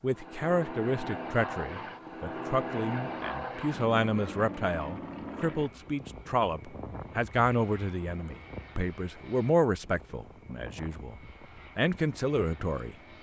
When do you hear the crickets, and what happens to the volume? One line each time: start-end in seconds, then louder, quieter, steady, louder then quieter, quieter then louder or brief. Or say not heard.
not heard.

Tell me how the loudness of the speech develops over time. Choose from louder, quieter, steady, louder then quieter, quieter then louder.
steady.